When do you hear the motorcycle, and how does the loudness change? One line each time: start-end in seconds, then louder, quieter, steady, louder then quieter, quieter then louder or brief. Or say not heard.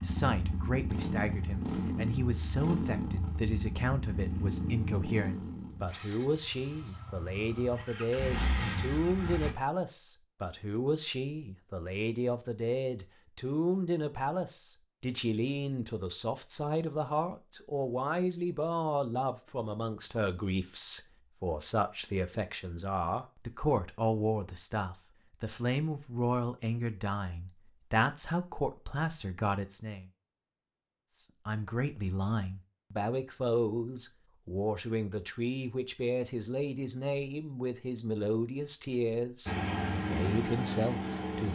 0.0-9.6 quieter then louder
39.5-41.5 brief.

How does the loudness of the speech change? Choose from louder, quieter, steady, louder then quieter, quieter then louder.
steady.